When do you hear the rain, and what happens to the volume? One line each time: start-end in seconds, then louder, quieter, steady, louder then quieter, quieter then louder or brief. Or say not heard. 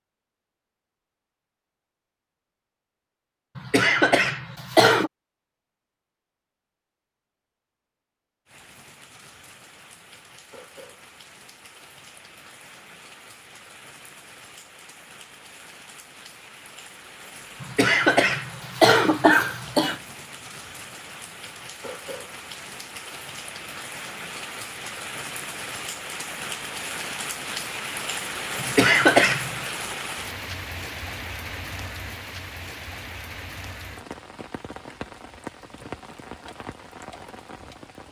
8.4-38.0 louder then quieter.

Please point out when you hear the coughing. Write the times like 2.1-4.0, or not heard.
3.5-5.1, 17.6-20.0, 28.6-29.6.